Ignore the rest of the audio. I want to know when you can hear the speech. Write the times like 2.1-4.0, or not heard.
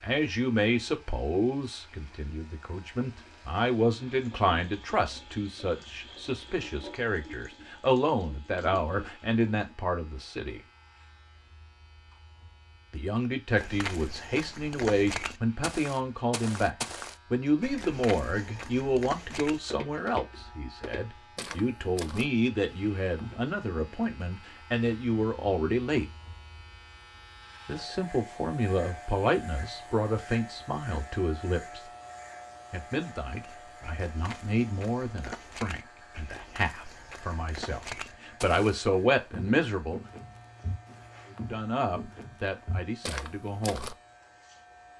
0.0-10.6, 12.9-26.1, 27.6-31.8, 32.7-40.0, 41.2-43.9.